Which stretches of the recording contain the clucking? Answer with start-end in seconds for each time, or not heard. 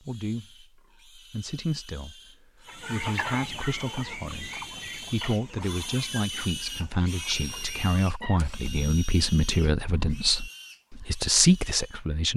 2.6-8.6.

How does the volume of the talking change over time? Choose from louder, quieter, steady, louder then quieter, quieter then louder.
louder.